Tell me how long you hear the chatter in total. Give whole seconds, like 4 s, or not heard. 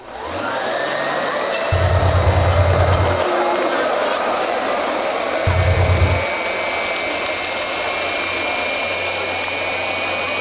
10 s.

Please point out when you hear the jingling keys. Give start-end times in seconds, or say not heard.
1.7-3.2, 5.5-6.2.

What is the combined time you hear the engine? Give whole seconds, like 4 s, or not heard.
10 s.